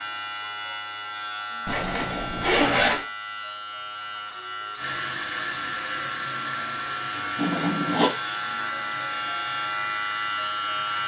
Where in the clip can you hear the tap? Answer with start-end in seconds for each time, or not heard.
4.8-11.0.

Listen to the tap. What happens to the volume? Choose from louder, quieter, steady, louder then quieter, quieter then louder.
quieter.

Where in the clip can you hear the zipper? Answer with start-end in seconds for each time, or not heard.
1.6-3.0, 7.3-8.1.